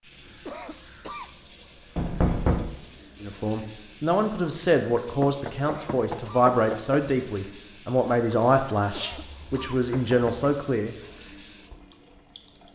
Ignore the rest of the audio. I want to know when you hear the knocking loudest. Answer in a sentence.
The volume of the knocking peaks at 2 seconds.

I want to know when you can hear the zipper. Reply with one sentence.
You can't hear the zipper here.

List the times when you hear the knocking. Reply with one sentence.
You can hear the knocking from 1.9 to 2.7 s, from 5.0 to 7.0 s and from 9.1 to 10.5 s.